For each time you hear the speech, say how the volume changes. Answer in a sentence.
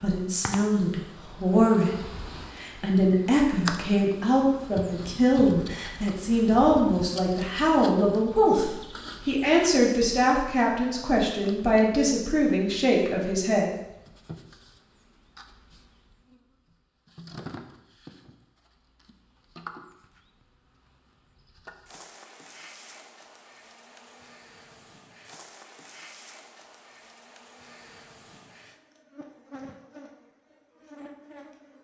You can hear the speech from 0.0 to 13.7 s, at a steady volume.